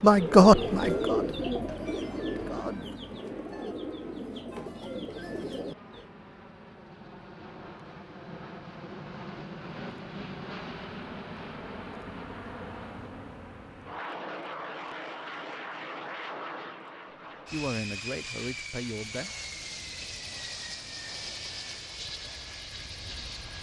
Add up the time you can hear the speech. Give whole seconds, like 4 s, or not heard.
5 s.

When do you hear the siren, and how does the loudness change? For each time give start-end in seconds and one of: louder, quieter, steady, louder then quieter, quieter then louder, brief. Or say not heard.
not heard.